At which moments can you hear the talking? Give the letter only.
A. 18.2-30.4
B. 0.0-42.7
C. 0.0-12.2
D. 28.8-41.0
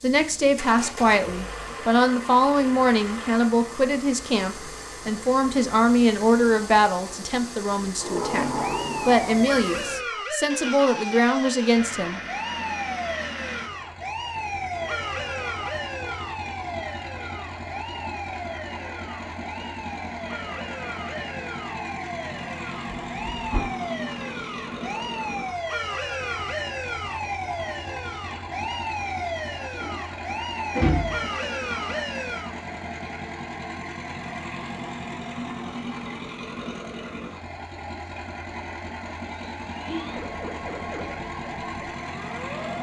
C.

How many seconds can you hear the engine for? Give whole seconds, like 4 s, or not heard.
43 s.